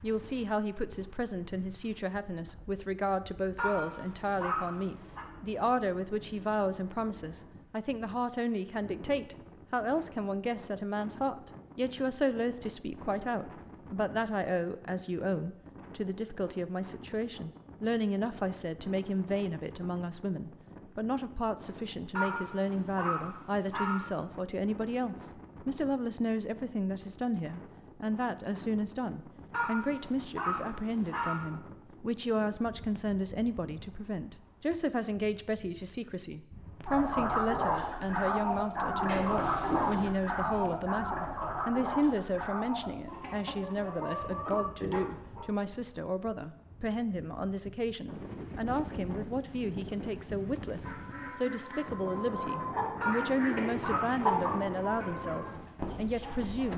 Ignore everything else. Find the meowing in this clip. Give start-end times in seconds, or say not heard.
39.0-40.1.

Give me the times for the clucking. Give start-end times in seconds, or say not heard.
36.9-45.5, 50.8-56.7.